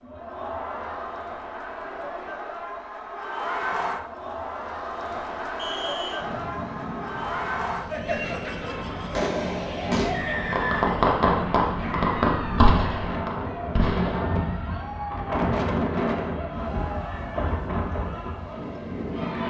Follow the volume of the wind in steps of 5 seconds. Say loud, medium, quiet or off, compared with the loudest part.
off, medium, loud, loud.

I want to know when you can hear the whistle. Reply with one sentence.
The whistle can be heard from 5.5 to 6.2 s and from 10.1 to 10.9 s.